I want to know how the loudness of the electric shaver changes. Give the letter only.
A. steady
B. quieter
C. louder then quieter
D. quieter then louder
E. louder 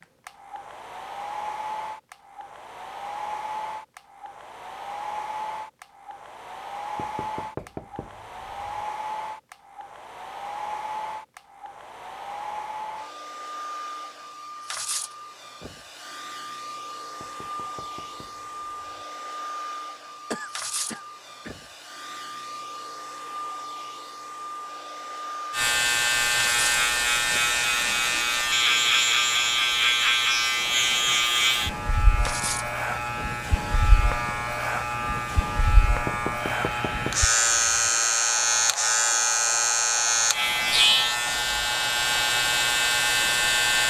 D.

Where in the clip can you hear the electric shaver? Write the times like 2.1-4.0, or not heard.
25.5-43.8.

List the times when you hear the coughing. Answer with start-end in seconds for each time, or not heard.
20.3-21.6.